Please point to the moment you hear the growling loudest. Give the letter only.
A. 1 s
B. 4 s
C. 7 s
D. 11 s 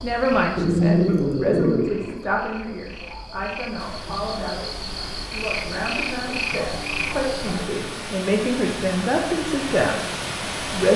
A.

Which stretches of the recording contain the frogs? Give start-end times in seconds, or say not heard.
0.0-7.7.